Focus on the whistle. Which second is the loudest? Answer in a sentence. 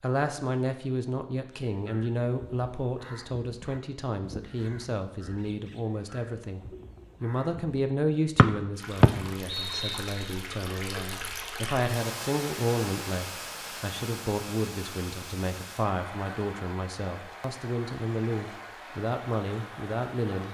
The loudest moment of the whistle is at 9 seconds.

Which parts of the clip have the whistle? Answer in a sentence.
You can hear the whistle from 8.3 to 10.3 s.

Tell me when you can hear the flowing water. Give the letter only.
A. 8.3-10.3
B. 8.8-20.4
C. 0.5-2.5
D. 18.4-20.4
B.